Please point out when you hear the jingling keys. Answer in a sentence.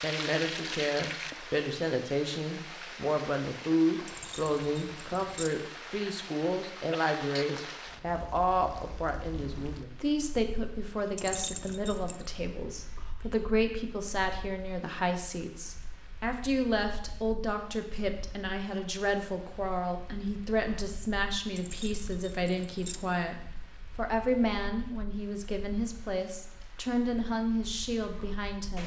You can hear the jingling keys from 4.0 to 5.5 s, from 11.2 to 12.2 s and from 21.6 to 23.0 s.